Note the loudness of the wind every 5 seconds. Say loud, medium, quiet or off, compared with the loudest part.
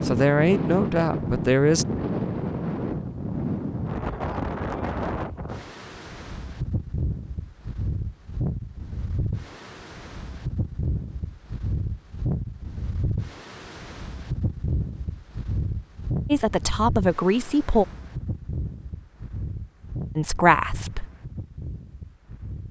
loud, medium, medium, medium, quiet.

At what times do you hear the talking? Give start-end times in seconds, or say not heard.
0.0-1.9, 16.2-17.9, 20.1-21.1.